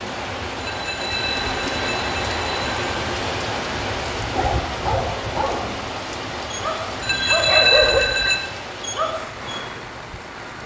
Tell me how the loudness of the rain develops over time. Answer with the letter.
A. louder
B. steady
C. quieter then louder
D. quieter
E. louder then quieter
D.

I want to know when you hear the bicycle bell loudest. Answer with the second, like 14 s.
8 s.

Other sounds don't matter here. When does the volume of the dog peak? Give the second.
8 s.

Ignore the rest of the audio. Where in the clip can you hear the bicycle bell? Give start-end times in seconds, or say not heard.
0.6-2.9, 7.0-8.4.